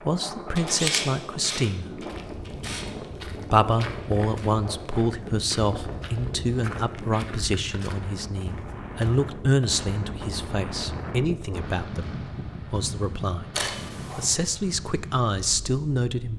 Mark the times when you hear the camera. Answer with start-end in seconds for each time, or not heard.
0.6-2.9, 13.5-14.2.